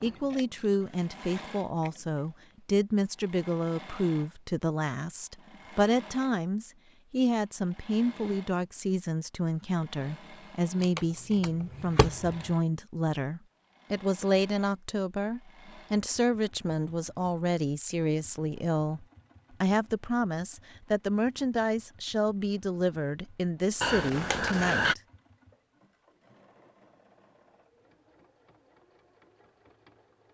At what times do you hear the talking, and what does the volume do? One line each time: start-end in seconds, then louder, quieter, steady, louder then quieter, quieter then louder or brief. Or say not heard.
0.0-25.0 steady.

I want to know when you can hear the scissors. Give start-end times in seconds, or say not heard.
0.1-2.0, 10.8-12.5, 23.8-24.9.